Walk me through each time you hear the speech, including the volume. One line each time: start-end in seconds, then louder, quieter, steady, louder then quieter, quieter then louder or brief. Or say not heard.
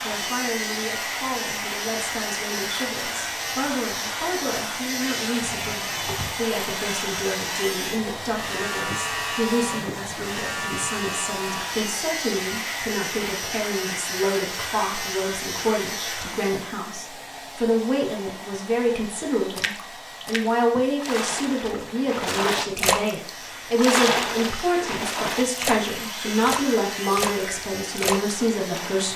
0.0-29.1 louder.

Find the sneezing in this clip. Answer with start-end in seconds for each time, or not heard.
9.7-10.4.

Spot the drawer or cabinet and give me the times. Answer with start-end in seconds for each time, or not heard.
5.4-6.3.